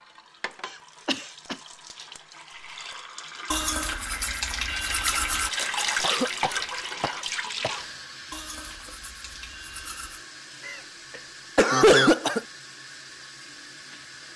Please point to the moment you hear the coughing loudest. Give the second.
12 s.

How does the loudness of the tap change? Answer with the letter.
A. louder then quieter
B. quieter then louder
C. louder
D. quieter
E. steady
A.